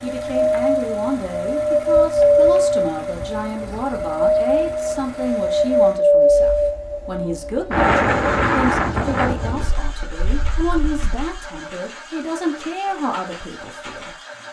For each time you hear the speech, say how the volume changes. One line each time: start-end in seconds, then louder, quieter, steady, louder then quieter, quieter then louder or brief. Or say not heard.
0.0-14.2 steady.